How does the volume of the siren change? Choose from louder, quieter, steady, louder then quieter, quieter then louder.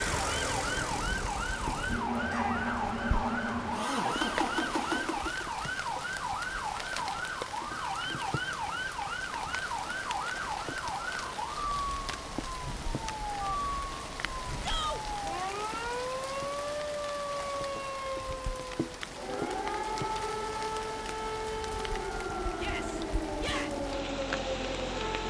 steady.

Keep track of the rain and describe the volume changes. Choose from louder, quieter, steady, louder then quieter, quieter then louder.
steady.